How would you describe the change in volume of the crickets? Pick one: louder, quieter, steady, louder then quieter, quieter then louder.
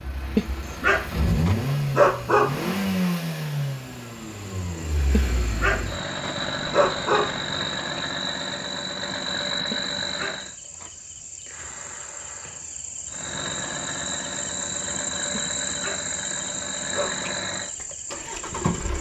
louder.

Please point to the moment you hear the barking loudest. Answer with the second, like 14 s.
2 s.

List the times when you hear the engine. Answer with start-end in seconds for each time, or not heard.
0.0-10.6, 13.1-18.9.